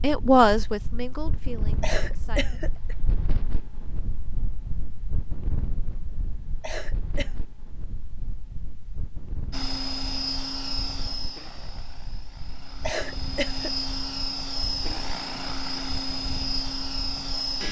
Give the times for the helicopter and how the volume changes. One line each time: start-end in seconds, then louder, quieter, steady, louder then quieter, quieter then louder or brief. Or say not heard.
9.5-17.6 quieter then louder.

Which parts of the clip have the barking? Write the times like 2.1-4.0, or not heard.
not heard.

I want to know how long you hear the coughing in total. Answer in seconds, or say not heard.
3 s.